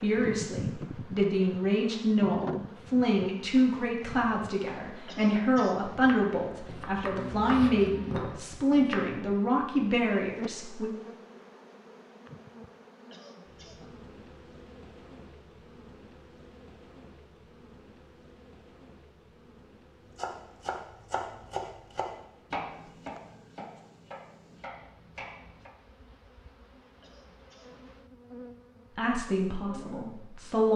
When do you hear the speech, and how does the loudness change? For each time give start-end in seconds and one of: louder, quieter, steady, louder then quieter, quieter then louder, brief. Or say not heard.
0.0-10.9 steady
28.9-30.7 brief.